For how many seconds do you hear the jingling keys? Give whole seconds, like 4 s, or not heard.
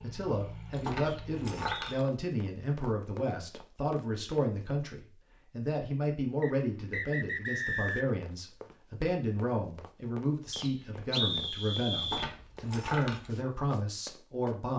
3 s.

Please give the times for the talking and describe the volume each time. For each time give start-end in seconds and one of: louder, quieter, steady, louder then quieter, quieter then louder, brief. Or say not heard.
0.0-14.7 steady.